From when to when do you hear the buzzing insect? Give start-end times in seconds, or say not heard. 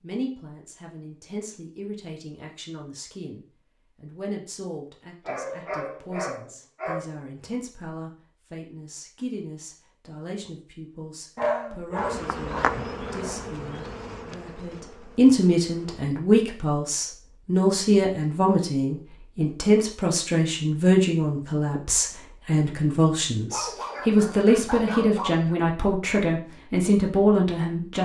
11.9-16.1.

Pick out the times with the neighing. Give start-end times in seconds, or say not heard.
not heard.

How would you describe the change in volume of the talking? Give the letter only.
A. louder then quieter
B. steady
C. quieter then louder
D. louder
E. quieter
D.